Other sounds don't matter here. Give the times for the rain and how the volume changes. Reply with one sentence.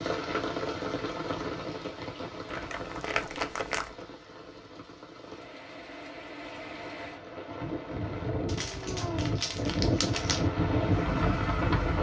You can hear the rain from 0.0 to 11.9 s, getting quieter then louder.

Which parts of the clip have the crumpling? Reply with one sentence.
The crumpling can be heard from 2.5 to 4.0 s and from 8.4 to 10.4 s.